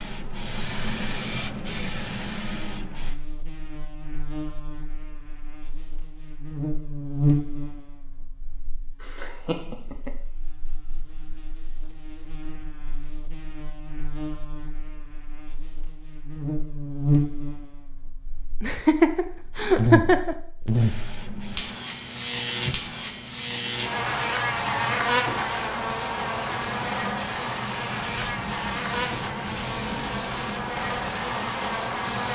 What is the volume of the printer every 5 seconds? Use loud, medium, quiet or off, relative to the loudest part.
loud, off, off, off, medium, loud, loud.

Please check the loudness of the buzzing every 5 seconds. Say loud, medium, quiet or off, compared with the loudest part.
quiet, loud, quiet, loud, loud, loud, loud.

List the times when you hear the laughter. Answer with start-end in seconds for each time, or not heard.
9.0-10.1, 18.6-20.4.